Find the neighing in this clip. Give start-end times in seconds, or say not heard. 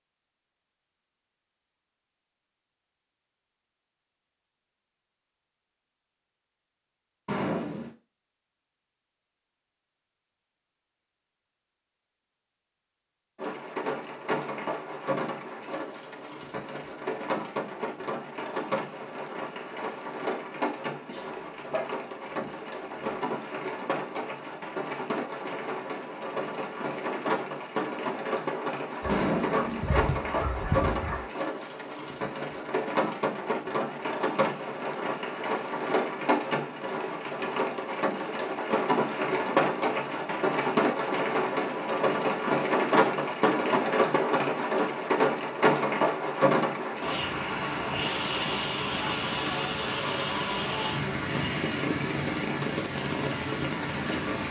7.2-8.0, 29.1-30.1.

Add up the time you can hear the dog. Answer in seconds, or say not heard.
4 s.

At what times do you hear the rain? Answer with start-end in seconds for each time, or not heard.
13.3-54.4.